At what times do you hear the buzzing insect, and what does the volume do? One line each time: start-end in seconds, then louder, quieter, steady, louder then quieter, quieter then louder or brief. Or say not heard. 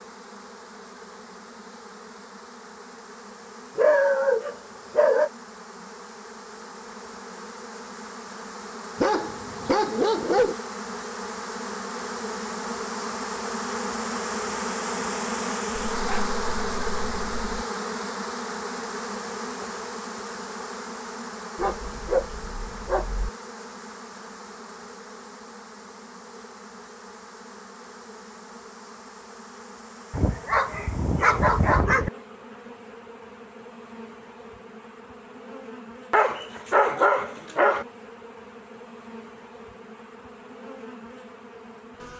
0.0-42.1 louder then quieter.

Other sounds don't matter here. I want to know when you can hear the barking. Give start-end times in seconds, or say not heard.
3.8-5.3, 9.0-10.6, 15.9-17.6, 21.6-23.3, 30.1-32.1, 36.1-37.9.